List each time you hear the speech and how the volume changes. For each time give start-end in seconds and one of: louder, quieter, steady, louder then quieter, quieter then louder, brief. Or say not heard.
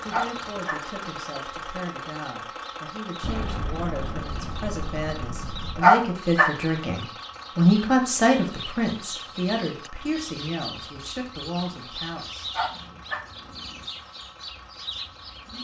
0.0-12.5 louder then quieter.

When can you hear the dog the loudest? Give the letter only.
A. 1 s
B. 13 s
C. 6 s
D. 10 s
C.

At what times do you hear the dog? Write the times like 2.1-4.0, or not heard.
0.1-0.8, 5.8-6.5, 12.5-13.2.